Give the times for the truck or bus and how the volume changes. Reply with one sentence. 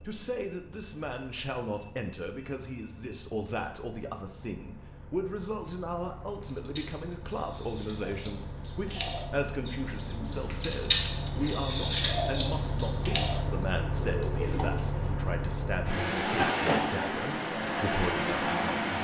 You can hear the truck or bus from 0.0 to 18.9 s, getting louder.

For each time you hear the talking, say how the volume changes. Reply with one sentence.
You can hear the talking from 0.0 to 18.9 s, at a steady volume.